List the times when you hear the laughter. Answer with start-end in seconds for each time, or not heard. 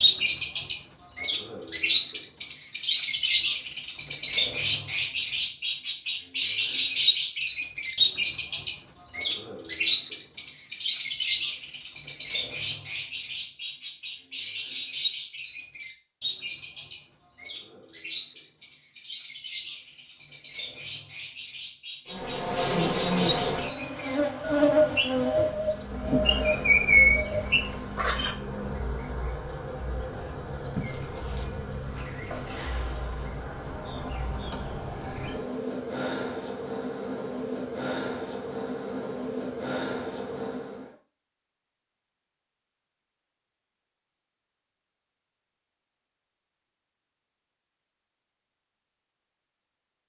not heard.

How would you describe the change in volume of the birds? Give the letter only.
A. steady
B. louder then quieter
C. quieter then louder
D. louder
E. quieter
C.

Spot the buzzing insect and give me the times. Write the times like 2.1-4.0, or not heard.
22.1-41.0.